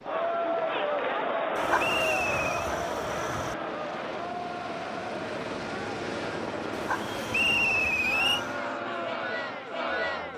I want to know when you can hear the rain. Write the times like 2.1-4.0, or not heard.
not heard.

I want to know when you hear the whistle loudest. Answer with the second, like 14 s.
8 s.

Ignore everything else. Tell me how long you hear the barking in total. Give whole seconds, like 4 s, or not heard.
4 s.